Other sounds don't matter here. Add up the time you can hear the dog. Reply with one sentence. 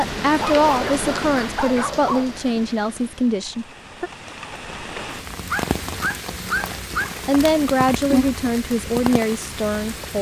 The dog can be heard for 4 seconds in total.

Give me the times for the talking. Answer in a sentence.
You can hear the talking from 0.0 to 4.1 s and from 7.2 to 10.1 s.